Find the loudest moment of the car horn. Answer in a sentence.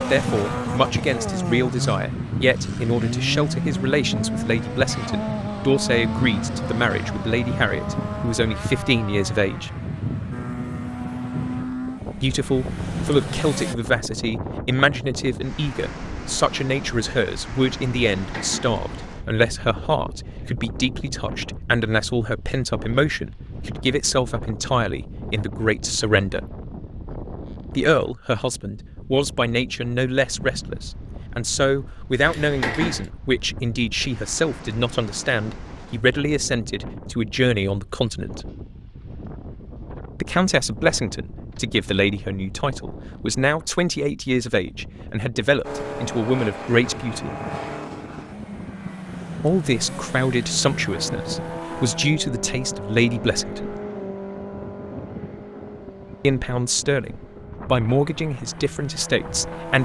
The volume of the car horn peaks at 33 seconds.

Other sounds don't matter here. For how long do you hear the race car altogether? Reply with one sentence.
You can hear the race car for 28 seconds altogether.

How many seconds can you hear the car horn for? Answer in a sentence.
The car horn can be heard for 2 seconds in total.